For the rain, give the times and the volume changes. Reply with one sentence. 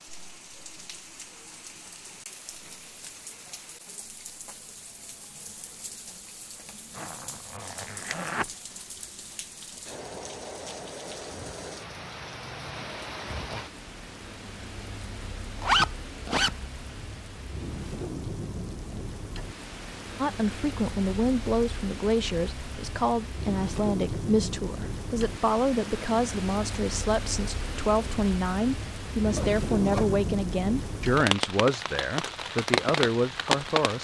The rain can be heard from 0.0 to 33.9 s, getting louder.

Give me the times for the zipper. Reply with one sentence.
You can hear the zipper from 7.0 to 8.5 s, from 15.6 to 16.5 s and from 29.4 to 30.2 s.